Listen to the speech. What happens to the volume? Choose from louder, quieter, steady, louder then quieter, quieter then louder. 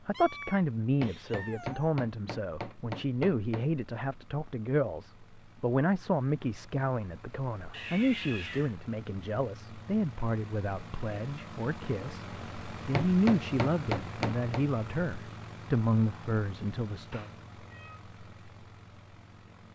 steady.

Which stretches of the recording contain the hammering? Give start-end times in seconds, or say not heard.
0.8-3.6, 12.8-14.7.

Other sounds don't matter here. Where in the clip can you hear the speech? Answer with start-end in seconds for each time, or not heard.
0.1-17.3.